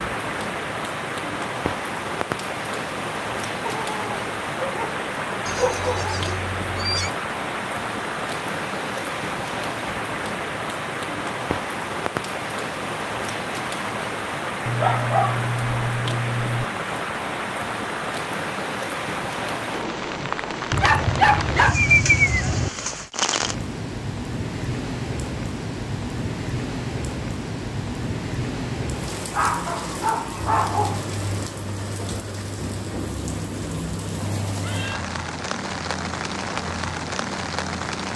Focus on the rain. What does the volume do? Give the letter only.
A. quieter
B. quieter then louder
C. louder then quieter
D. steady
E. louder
D.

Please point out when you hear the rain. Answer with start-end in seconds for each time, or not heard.
0.0-38.1.